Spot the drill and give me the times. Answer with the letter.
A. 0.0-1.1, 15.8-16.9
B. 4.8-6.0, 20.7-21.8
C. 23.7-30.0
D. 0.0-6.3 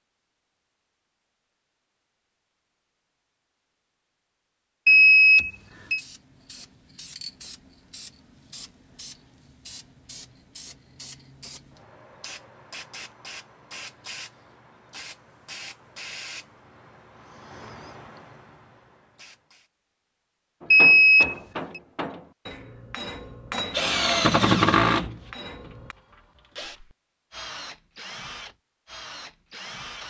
C.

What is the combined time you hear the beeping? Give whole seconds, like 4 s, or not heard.
2 s.